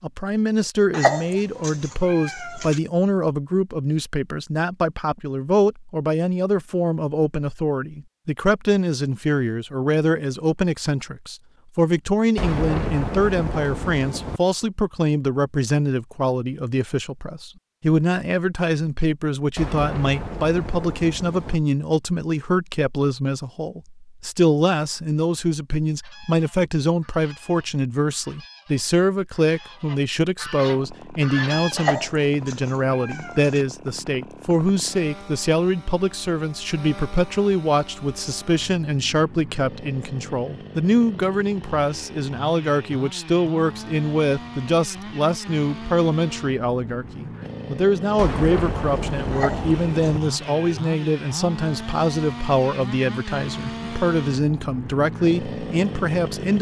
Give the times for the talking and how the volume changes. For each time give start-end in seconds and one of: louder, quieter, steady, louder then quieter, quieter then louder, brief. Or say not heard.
0.0-56.5 steady.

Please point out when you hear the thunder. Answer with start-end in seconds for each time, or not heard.
12.3-14.4, 19.6-21.6, 48.1-50.2.